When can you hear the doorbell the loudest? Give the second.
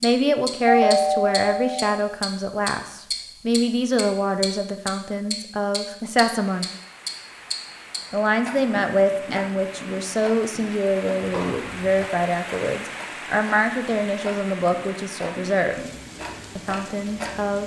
1 s.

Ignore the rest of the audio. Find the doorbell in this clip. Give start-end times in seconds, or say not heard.
0.7-1.9, 11.2-11.9.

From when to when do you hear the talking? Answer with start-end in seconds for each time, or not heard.
0.0-6.7, 8.1-15.8, 16.6-17.6.